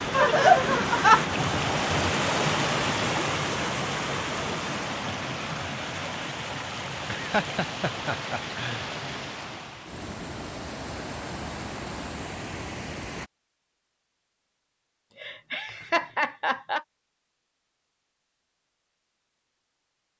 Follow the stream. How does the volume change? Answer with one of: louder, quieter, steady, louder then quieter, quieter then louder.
quieter.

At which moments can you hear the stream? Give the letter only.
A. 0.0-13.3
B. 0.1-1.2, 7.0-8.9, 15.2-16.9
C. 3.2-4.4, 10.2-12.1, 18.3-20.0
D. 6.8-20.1
A.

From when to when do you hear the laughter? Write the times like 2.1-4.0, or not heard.
0.1-1.2, 7.0-8.9, 15.2-16.9.